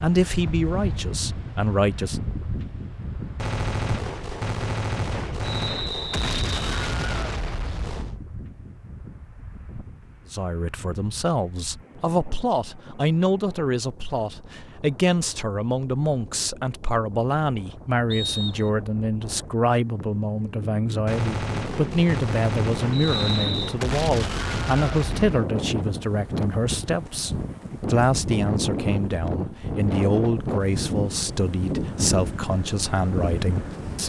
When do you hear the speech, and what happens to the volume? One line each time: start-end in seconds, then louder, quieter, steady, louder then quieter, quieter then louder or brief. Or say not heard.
0.0-2.2 brief
10.3-34.0 steady.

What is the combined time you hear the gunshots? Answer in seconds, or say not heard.
9 s.